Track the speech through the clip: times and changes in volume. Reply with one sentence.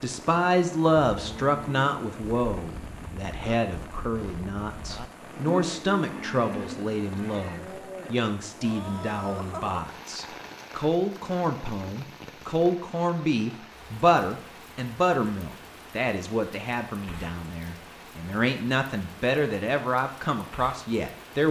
You can hear the speech from 0.0 to 21.4 s, at a steady volume.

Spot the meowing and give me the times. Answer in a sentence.
You can't hear the meowing here.